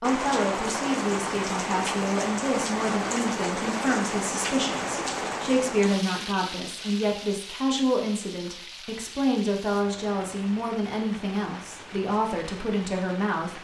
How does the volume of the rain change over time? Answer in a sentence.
The volume of the rain goes down.